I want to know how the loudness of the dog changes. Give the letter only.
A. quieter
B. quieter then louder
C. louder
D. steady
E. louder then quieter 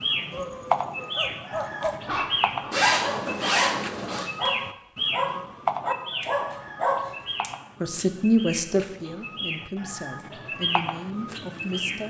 C.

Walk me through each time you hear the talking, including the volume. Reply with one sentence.
The talking can be heard from 7.8 to 12.0 s, getting quieter.